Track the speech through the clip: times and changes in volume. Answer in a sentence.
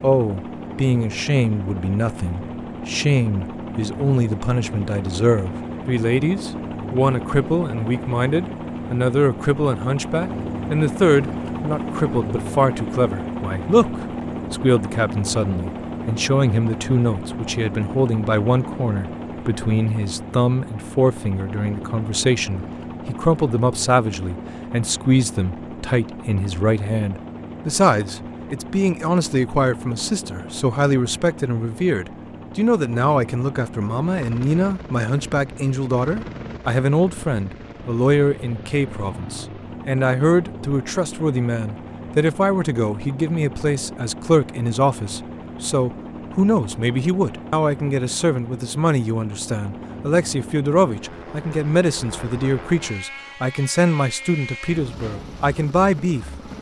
You can hear the speech from 0.0 to 56.2 s, at a steady volume.